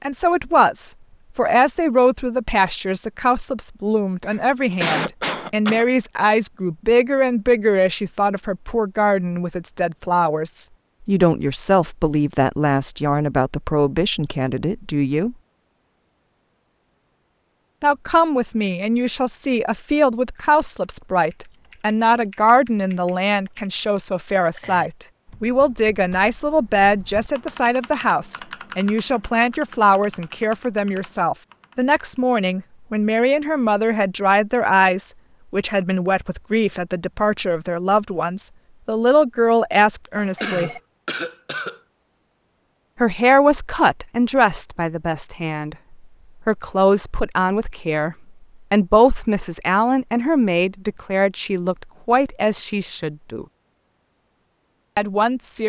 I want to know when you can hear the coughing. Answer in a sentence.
The coughing can be heard from 4.2 to 5.8 s and from 40.4 to 41.8 s.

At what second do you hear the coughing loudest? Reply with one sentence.
The volume of the coughing peaks at 5 seconds.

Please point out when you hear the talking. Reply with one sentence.
The talking can be heard from 0.0 to 15.3 s, from 17.8 to 40.7 s, from 43.0 to 45.8 s, from 46.5 to 53.5 s and from 55.0 to 55.6 s.